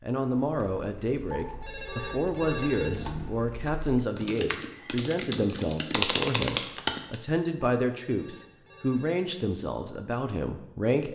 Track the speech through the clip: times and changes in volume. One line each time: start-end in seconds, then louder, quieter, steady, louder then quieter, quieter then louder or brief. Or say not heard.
0.0-11.1 steady.